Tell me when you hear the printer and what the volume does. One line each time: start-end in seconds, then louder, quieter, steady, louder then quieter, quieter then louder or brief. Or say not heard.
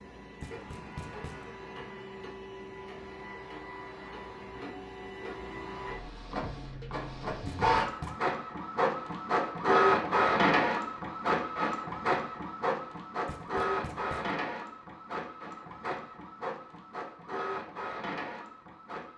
0.0-19.1 louder then quieter.